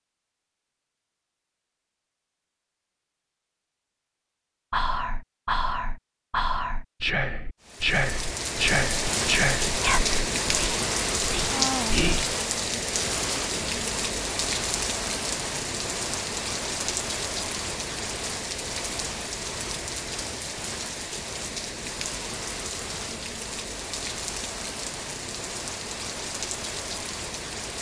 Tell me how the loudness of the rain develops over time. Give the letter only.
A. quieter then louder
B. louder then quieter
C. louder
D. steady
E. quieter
E.